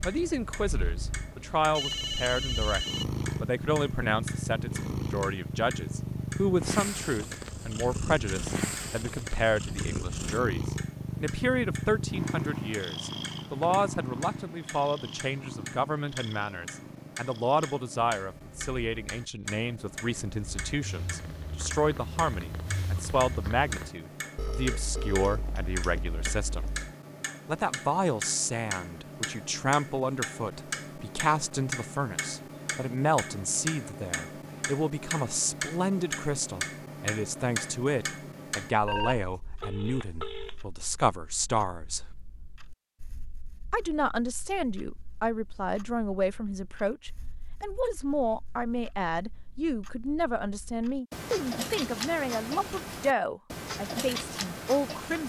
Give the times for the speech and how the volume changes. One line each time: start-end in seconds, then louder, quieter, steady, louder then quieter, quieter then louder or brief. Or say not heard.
0.0-2.8 brief
3.4-26.6 steady
27.4-42.0 steady
43.7-55.2 steady.